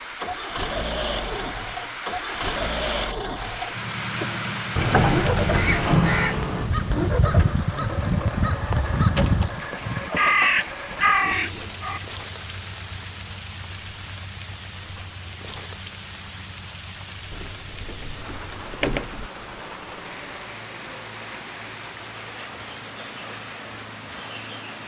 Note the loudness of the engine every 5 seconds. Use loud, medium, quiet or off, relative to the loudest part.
loud, loud, medium, quiet, quiet.